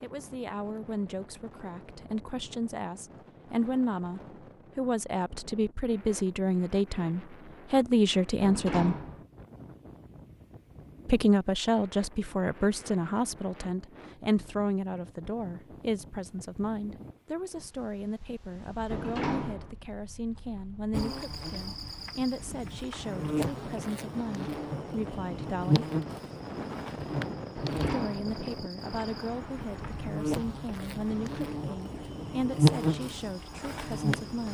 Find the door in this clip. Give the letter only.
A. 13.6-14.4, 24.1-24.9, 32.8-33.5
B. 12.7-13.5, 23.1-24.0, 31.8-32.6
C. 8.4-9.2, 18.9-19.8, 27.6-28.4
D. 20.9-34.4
C.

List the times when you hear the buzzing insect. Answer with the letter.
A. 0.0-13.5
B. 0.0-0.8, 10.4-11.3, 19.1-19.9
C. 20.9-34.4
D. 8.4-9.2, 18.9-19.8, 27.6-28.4
C.